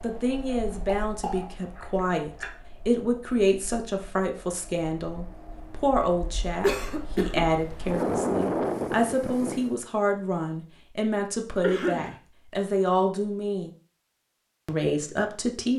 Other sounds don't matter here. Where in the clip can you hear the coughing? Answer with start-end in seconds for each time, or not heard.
0.5-2.5, 6.6-7.5, 11.6-12.2.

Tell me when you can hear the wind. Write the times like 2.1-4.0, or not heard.
0.0-9.8.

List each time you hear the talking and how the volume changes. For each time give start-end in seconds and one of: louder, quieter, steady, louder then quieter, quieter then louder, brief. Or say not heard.
0.0-13.7 steady
14.7-15.7 brief.